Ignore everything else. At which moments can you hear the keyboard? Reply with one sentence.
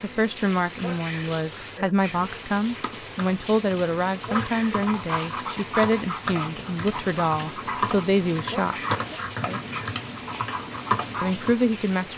You can hear the keyboard from 2.6 to 11.6 s.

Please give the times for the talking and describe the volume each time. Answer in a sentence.
You can hear the talking from 0.0 to 8.8 s, at a steady volume; and briefly from 11.2 to 12.1 s.